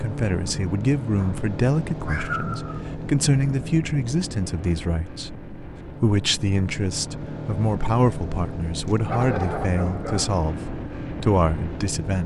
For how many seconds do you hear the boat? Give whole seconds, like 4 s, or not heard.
12 s.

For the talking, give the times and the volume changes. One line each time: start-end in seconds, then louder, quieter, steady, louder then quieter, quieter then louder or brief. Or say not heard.
0.0-12.2 steady.